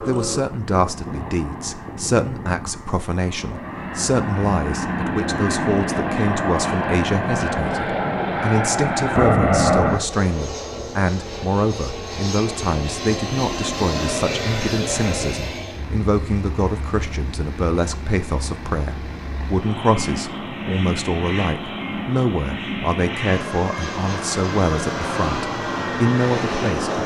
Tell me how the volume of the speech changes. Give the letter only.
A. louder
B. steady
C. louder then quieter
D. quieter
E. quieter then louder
B.